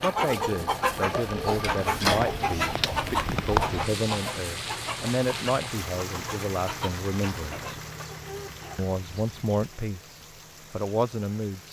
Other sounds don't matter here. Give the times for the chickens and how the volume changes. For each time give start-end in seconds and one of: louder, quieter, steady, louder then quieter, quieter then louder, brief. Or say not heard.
0.0-9.7 quieter.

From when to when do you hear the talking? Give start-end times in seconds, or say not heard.
0.0-7.7, 8.8-11.6.